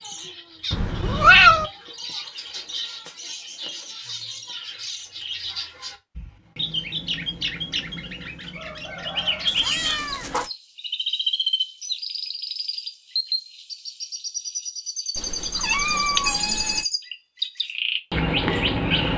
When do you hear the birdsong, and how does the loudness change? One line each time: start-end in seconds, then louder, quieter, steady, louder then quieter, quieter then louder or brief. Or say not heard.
0.0-19.1 louder.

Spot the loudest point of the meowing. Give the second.
1 s.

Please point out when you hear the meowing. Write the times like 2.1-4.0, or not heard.
0.7-1.7, 9.4-10.4, 15.2-16.9.